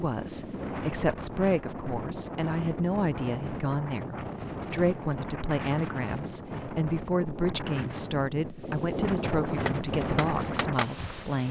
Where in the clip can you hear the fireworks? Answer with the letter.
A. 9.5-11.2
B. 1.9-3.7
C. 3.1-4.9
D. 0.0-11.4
A.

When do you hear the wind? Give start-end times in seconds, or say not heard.
0.0-11.4.